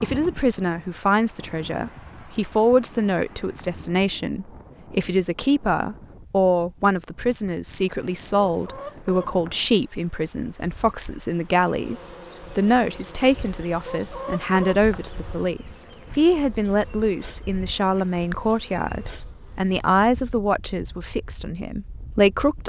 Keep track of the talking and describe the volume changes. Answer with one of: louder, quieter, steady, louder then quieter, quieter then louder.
steady.